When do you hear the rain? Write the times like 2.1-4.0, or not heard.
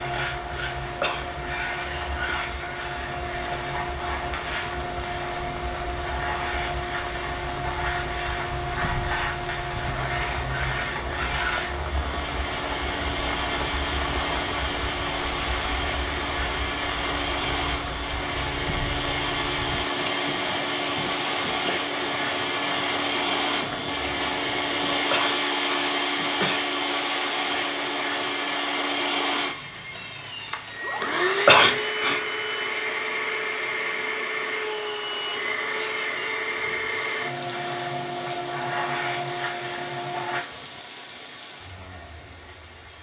0.0-42.9.